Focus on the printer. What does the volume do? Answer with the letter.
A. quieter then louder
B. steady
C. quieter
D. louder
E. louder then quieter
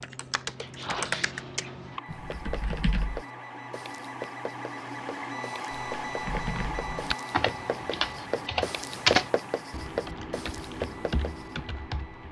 E.